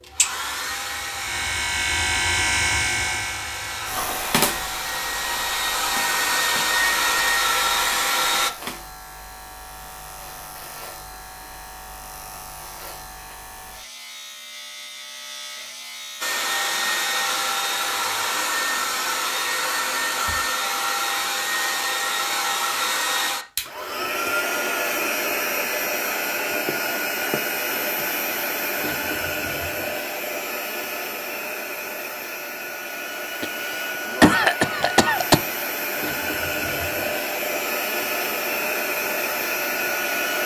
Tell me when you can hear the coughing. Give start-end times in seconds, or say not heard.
33.4-35.4.